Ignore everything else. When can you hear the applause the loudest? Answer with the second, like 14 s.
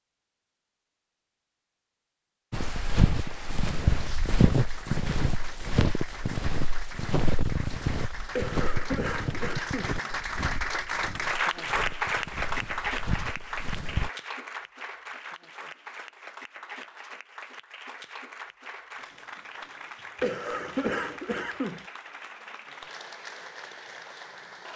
12 s.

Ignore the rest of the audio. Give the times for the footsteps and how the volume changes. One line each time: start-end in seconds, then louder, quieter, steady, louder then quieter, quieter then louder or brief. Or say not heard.
2.5-14.1 quieter.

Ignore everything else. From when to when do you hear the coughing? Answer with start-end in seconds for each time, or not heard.
8.3-10.0, 20.2-21.9.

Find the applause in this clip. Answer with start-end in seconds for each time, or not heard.
2.5-24.7.